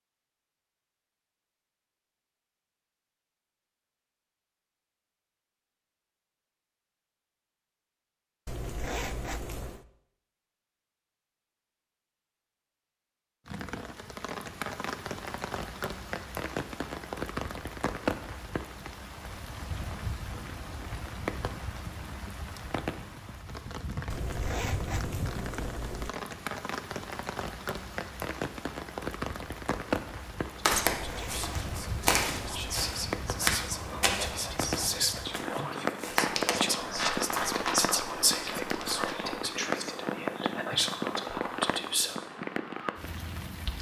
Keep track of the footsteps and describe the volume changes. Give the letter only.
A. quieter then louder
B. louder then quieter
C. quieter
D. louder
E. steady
C.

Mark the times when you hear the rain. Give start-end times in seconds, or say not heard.
13.4-43.7.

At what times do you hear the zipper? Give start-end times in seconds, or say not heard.
8.4-9.8, 24.1-26.1, 30.7-32.8.